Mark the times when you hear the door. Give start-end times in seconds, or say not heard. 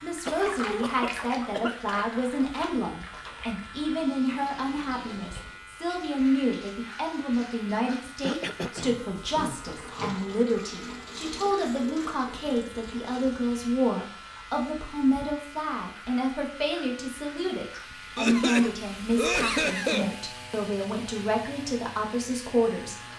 not heard.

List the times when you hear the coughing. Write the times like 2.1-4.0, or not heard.
0.2-1.9, 8.2-10.2, 18.1-20.1.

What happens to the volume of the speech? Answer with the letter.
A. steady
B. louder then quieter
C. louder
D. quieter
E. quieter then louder
A.